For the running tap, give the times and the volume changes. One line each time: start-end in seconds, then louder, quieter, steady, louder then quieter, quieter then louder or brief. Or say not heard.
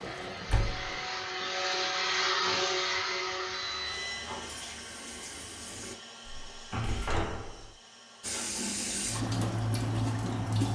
0.0-6.0 quieter then louder
8.2-10.6 brief.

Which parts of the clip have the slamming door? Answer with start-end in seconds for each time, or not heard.
0.5-0.9, 6.2-7.8.